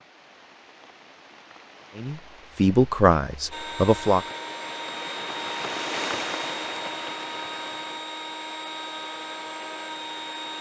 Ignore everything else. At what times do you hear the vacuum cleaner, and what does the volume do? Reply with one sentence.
The vacuum cleaner can be heard from 3.5 to 10.5 s, at a steady volume.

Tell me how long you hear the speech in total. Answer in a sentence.
The speech can be heard for 2 seconds in total.